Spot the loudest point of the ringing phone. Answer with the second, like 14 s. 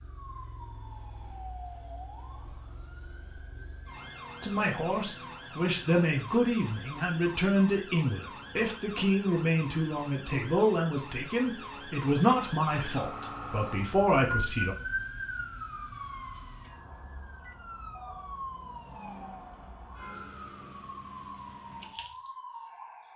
18 s.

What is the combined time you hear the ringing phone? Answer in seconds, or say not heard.
2 s.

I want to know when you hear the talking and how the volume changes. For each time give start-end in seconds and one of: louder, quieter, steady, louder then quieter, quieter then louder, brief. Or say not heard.
4.4-14.8 steady.